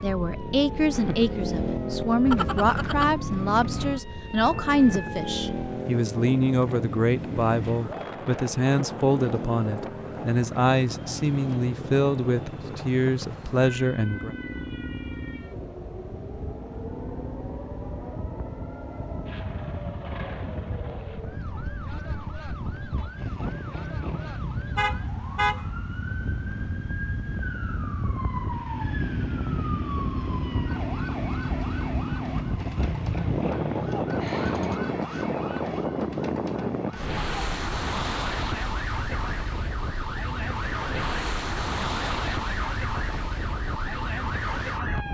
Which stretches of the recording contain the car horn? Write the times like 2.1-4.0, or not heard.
2.2-3.1, 24.8-25.6.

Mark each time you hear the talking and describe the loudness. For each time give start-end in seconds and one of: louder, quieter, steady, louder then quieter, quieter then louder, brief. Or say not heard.
0.0-14.3 steady.